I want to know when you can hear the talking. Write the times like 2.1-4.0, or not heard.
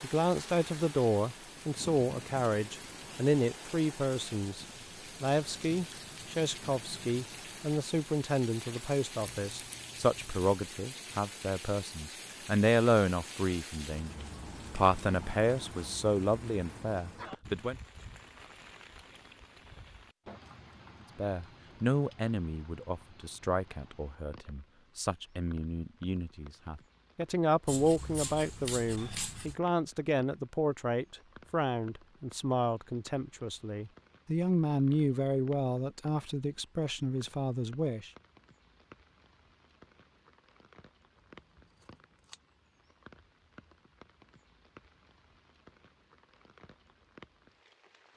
0.0-17.8, 21.1-38.1.